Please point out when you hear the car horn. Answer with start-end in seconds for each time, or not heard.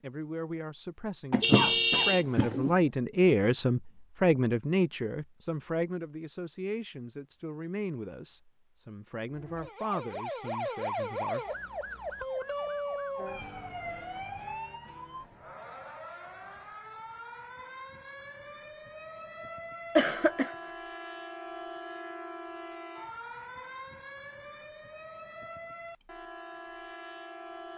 1.4-2.2.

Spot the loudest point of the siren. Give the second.
11 s.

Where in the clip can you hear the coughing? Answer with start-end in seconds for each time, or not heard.
1.3-2.7, 19.9-20.6.